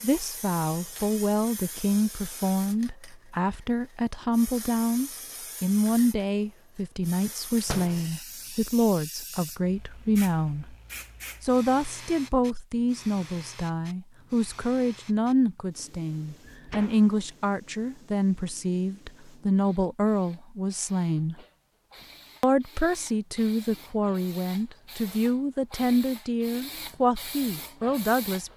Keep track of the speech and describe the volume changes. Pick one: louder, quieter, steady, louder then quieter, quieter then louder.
steady.